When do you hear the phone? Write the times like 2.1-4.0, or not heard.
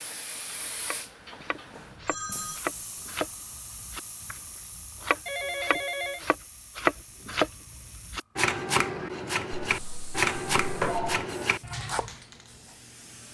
1.4-2.6, 5.2-6.3, 9.6-11.2.